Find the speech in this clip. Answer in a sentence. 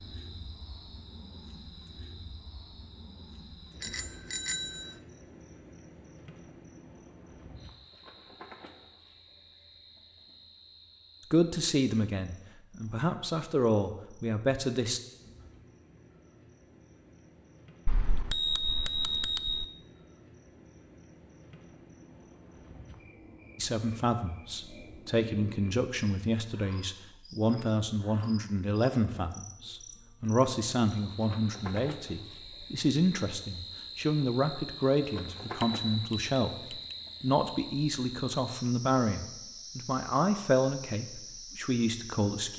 The speech can be heard from 11.3 to 15.0 s and from 23.6 to 42.5 s.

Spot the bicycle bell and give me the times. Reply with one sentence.
The bicycle bell can be heard from 3.8 to 5.0 s, from 17.9 to 19.6 s and from 35.6 to 37.1 s.